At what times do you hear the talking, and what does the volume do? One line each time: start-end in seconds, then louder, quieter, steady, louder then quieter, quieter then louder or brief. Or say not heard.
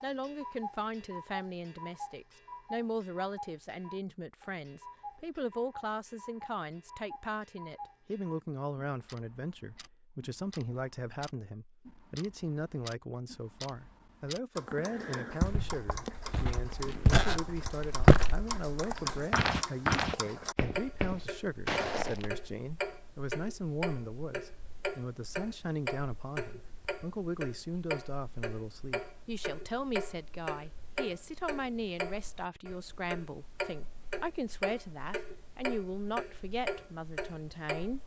0.0-38.0 steady.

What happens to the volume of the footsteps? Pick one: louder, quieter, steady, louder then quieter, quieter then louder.
louder then quieter.